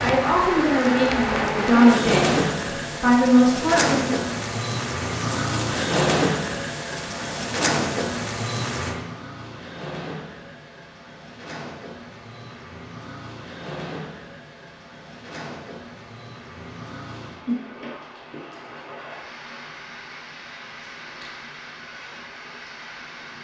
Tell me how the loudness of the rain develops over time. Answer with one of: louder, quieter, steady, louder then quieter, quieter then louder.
quieter.